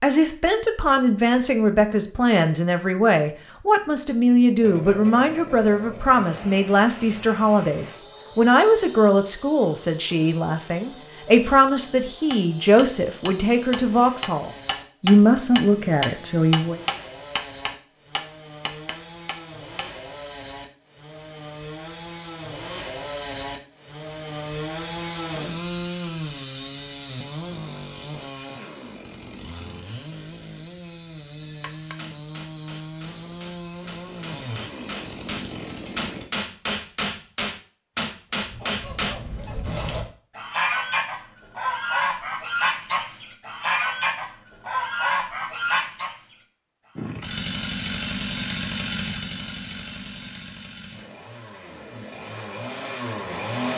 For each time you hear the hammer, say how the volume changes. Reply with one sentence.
The hammer can be heard from 12.3 to 19.9 s, getting louder then quieter; and from 31.4 to 39.1 s, getting louder.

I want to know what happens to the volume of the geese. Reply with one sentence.
The volume of the geese goes up.